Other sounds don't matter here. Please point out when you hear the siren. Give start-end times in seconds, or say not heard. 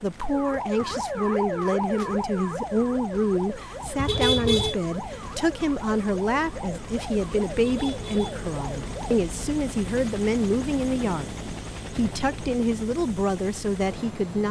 0.1-9.2.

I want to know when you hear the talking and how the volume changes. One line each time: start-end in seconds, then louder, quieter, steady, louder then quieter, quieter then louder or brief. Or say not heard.
0.0-14.4 steady.